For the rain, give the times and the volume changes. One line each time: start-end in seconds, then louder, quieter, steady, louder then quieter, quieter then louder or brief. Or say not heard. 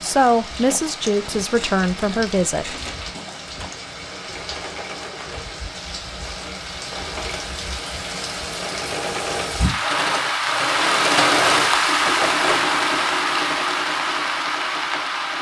0.0-15.3 louder.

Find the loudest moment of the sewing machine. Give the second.
11 s.